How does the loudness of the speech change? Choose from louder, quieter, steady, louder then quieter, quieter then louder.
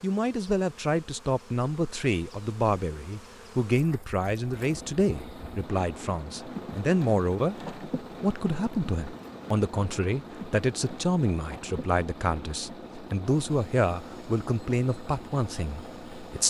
steady.